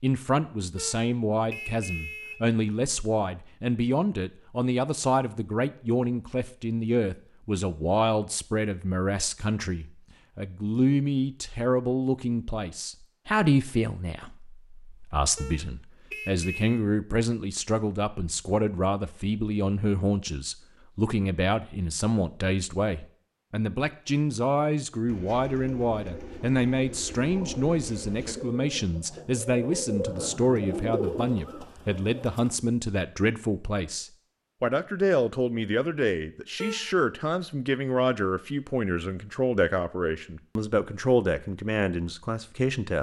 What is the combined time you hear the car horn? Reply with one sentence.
The car horn can be heard for 4 seconds in total.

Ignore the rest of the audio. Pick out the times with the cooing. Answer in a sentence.
The cooing can be heard from 25.1 to 32.5 s.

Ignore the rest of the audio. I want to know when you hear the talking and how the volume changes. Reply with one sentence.
The talking can be heard from 0.0 to 42.9 s, at a steady volume.